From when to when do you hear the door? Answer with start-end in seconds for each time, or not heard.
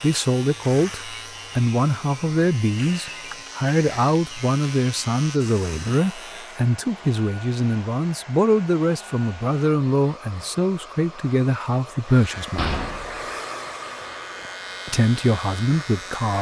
12.6-13.3.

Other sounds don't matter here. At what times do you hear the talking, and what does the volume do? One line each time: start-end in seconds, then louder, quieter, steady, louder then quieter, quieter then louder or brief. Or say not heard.
0.0-12.8 steady
14.8-16.3 brief.